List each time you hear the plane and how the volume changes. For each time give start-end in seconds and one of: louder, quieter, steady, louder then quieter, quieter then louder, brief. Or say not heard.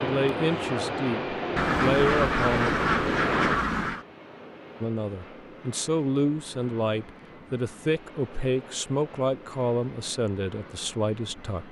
0.0-11.6 quieter.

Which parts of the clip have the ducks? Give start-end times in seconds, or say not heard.
1.6-4.0.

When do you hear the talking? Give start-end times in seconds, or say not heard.
0.0-2.7, 4.8-11.6.